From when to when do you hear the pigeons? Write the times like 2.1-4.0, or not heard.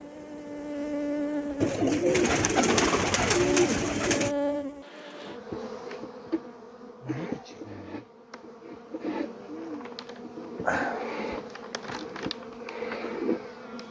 1.6-4.3.